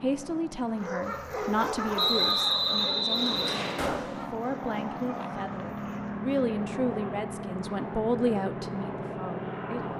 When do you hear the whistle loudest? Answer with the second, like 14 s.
2 s.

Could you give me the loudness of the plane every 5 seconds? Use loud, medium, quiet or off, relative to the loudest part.
medium, loud.